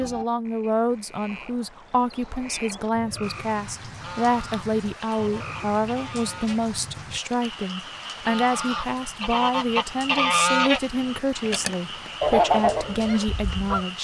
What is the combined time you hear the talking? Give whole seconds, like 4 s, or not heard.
14 s.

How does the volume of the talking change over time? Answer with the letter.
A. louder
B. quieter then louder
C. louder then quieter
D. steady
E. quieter
D.